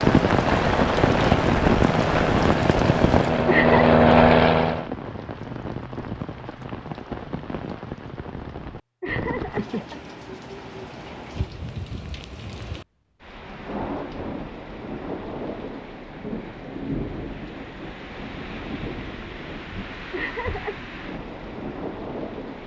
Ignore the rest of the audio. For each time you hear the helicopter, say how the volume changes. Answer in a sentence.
You can hear the helicopter from 0.0 to 4.8 s, getting louder.